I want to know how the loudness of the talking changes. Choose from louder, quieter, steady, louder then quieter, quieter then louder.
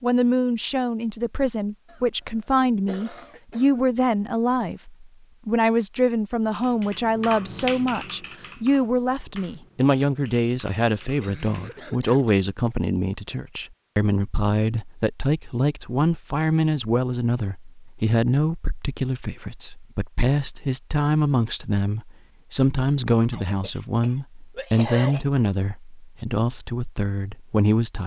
steady.